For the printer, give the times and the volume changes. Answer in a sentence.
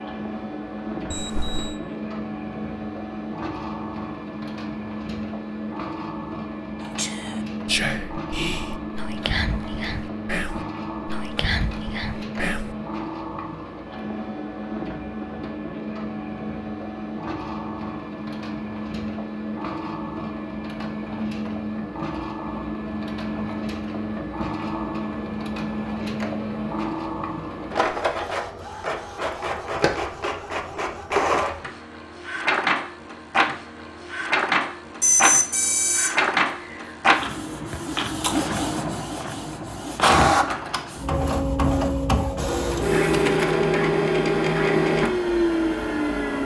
You can hear the printer from 0.0 to 46.4 s, getting louder.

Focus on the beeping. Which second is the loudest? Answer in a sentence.
The volume of the beeping peaks at 35 seconds.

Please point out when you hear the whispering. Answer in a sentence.
The whispering can be heard from 6.8 to 12.8 s.